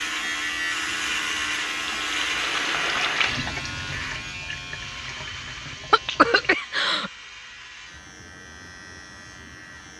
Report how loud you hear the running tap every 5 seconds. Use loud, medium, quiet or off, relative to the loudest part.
loud, medium.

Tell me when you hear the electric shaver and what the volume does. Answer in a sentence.
The electric shaver can be heard from 0.0 to 9.9 s, getting quieter.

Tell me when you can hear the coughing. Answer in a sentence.
You can hear the coughing from 5.9 to 7.1 s.